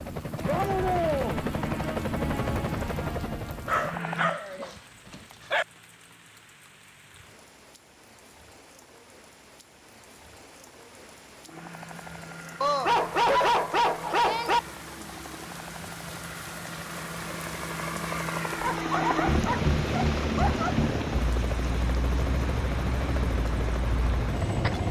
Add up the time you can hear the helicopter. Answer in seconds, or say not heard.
18 s.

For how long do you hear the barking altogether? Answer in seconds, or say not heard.
6 s.